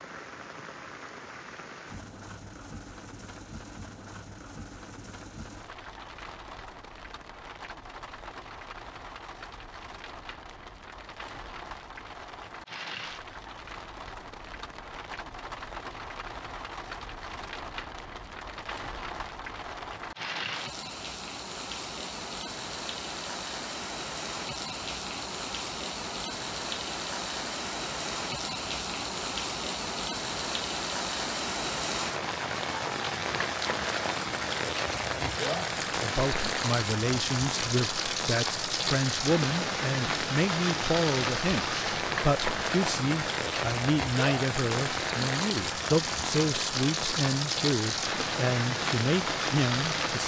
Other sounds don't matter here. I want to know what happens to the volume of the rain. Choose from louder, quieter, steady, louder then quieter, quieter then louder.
louder.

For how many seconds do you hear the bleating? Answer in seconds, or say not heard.
not heard.